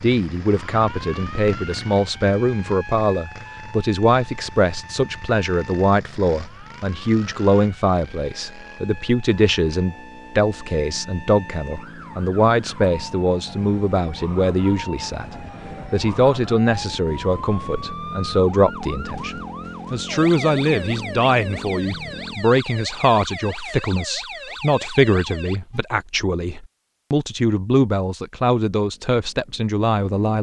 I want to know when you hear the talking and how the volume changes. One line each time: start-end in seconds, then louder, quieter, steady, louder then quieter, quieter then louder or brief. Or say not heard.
0.0-30.3 steady.